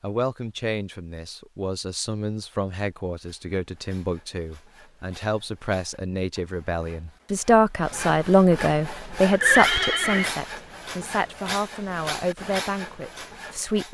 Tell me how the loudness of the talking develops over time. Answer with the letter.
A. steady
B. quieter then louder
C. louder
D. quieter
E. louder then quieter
E.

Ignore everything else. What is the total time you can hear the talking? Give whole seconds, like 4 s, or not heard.
14 s.